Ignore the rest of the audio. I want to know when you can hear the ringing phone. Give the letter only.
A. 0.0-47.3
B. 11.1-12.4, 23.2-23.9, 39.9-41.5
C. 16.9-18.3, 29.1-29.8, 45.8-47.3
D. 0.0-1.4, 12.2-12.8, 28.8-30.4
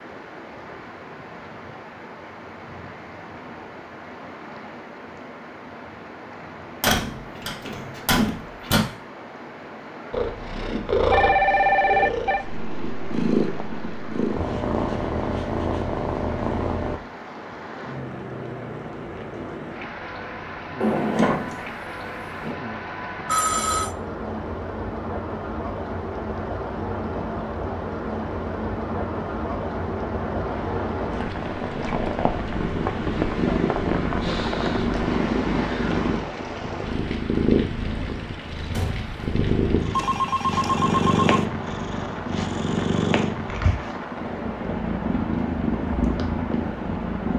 B.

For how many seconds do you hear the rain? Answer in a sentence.
The rain can be heard for 47 seconds in total.